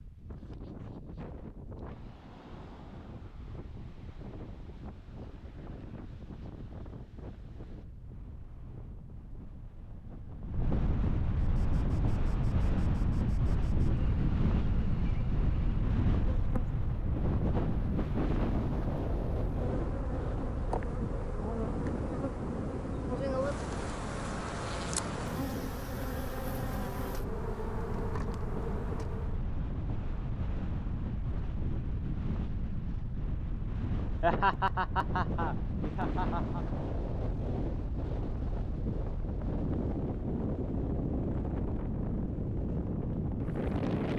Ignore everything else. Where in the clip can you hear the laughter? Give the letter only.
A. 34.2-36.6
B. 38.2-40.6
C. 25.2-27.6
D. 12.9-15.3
A.